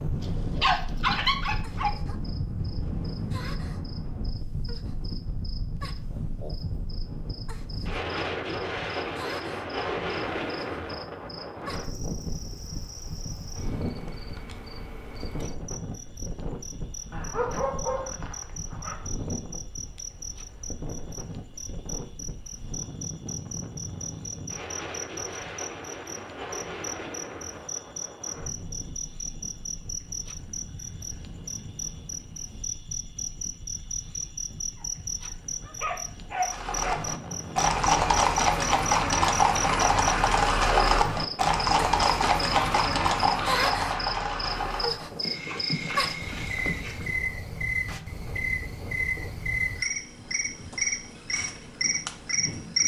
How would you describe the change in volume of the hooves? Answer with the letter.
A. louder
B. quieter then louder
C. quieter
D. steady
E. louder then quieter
C.